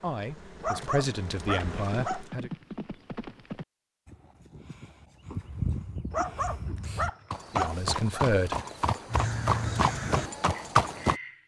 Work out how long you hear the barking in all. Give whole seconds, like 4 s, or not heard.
4 s.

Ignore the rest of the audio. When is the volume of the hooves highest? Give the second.
11 s.